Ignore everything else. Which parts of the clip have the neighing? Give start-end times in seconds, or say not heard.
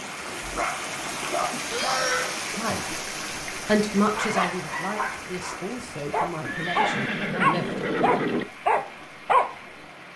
1.7-2.4, 6.4-8.4.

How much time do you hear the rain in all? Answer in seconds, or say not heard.
10 s.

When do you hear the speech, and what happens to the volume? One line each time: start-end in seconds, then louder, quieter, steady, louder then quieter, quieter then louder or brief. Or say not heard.
2.5-7.8 quieter.